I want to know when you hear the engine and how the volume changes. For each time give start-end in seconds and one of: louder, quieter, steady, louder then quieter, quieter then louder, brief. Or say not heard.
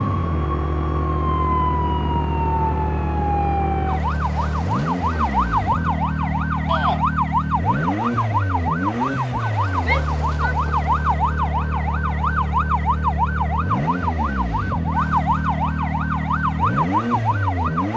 0.0-17.9 steady.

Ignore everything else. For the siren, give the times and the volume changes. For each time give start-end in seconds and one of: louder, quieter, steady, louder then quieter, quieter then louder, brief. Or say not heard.
0.0-17.9 steady.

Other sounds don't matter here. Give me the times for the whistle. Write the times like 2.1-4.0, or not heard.
not heard.